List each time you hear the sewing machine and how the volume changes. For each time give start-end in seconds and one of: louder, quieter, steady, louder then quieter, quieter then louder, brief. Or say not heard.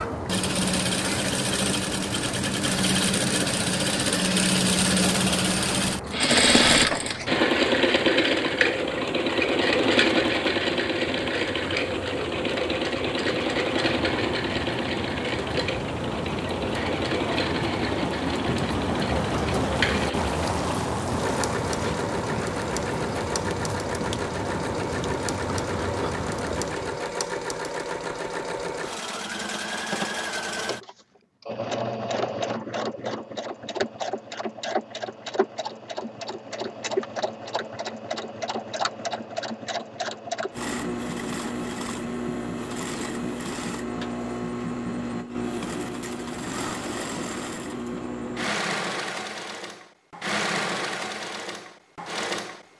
0.0-52.7 quieter.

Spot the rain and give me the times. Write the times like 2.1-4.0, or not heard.
0.0-27.1.